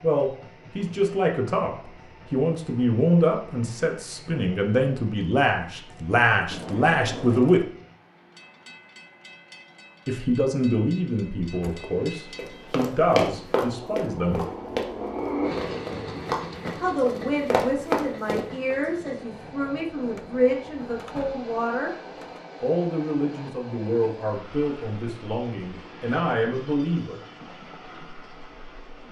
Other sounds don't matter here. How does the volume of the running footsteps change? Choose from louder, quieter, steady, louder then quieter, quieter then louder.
quieter then louder.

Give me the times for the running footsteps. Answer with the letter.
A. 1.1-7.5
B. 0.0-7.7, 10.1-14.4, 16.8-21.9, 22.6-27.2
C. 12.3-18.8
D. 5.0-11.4
C.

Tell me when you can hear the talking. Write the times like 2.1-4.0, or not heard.
0.0-7.7, 10.1-14.4, 16.8-21.9, 22.6-27.2.